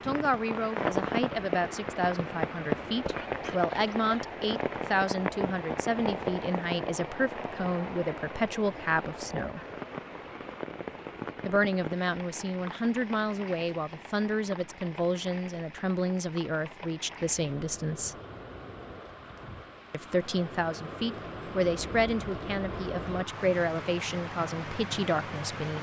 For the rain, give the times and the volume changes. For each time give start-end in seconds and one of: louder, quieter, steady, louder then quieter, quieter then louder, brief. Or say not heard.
0.0-25.7 quieter then louder.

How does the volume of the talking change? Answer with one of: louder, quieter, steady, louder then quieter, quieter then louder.
steady.